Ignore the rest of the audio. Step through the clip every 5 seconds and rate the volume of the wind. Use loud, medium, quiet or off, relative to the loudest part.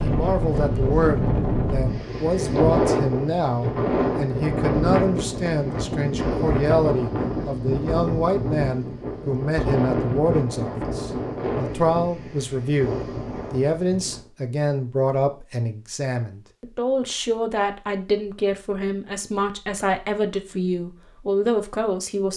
loud, loud, medium, off, off.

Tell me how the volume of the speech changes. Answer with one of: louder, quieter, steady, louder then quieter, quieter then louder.
steady.